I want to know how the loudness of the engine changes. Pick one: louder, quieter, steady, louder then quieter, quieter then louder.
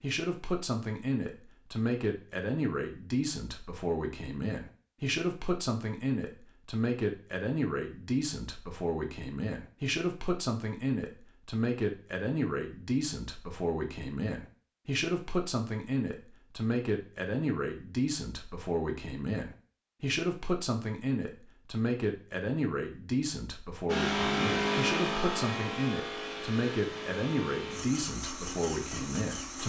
quieter.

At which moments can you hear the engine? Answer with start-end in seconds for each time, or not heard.
23.9-29.6.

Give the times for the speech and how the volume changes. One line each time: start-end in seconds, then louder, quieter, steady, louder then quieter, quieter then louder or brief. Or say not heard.
0.0-29.6 steady.